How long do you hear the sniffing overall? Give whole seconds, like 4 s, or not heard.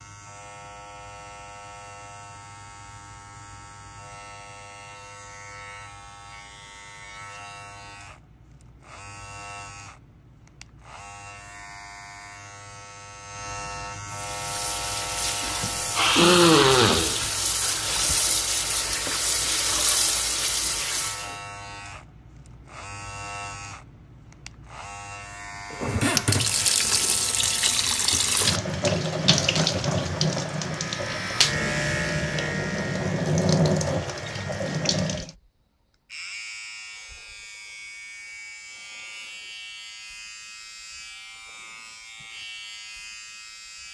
2 s.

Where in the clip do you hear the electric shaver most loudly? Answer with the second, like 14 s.
32 s.